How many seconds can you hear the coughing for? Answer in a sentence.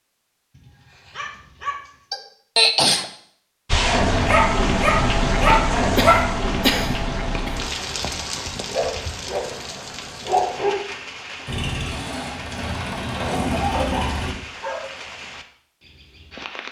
You can hear the coughing for 3 seconds altogether.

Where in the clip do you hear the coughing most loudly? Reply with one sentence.
The volume of the coughing peaks at 3 seconds.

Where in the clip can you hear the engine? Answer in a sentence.
The engine can be heard from 11.4 to 14.3 s.